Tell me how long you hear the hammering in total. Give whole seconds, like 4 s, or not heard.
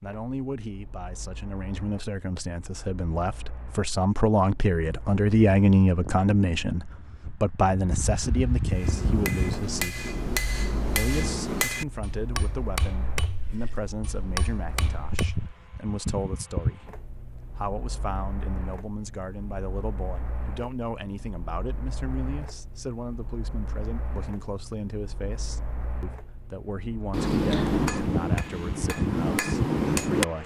10 s.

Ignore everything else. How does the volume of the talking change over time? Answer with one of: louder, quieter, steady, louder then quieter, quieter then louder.
quieter.